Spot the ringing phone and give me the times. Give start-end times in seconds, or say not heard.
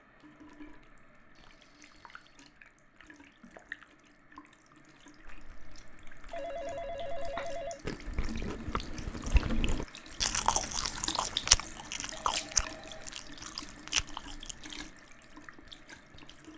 1.4-2.4, 6.3-7.8, 12.1-13.2.